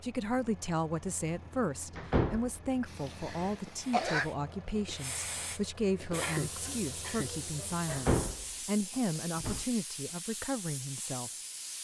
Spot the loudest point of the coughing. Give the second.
4 s.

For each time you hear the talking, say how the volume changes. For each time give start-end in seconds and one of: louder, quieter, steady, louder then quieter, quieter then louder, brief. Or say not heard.
0.0-11.3 steady.